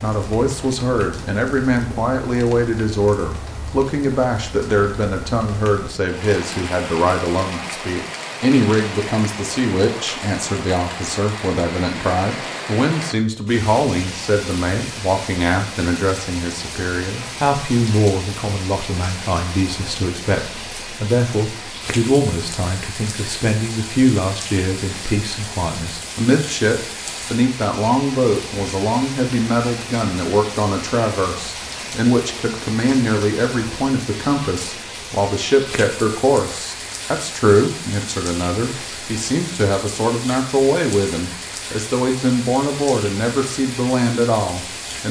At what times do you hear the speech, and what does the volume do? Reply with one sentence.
The speech can be heard from 0.0 to 45.0 s, at a steady volume.